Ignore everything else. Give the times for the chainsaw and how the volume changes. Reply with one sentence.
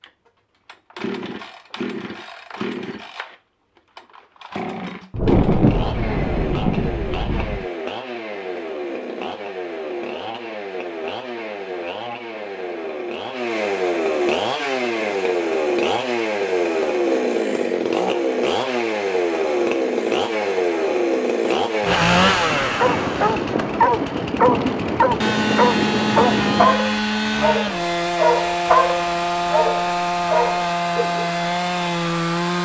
The chainsaw can be heard from 0.0 to 32.5 s, getting louder.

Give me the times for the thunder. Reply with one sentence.
The thunder can be heard from 5.1 to 7.7 s and from 21.8 to 26.8 s.